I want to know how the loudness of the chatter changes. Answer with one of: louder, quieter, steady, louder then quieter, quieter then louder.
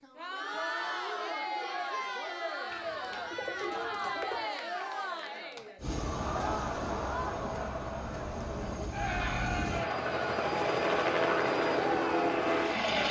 steady.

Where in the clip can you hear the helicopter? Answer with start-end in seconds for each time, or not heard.
5.8-13.0.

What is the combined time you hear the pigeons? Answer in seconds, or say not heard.
2 s.